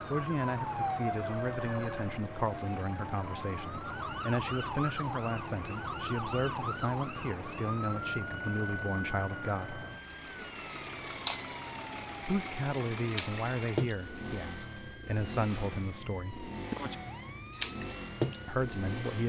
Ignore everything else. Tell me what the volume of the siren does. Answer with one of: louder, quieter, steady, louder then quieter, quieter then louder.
steady.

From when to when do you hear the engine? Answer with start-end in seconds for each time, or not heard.
0.0-19.2.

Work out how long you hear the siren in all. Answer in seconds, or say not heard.
19 s.